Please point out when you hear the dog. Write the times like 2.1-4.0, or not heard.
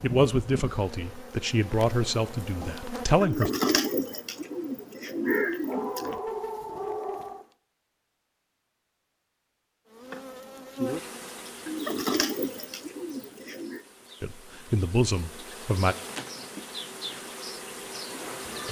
5.7-7.5.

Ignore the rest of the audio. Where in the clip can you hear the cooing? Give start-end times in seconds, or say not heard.
3.2-6.2, 11.7-13.8.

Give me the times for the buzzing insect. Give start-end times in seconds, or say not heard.
0.0-7.5, 9.9-18.6.